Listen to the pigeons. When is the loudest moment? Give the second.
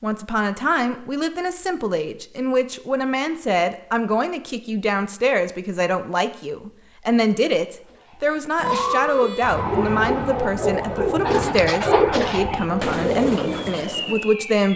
12 s.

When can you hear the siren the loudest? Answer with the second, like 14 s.
9 s.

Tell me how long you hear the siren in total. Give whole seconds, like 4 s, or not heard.
6 s.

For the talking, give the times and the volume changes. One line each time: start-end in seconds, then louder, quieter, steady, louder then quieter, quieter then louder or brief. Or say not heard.
0.0-14.7 steady.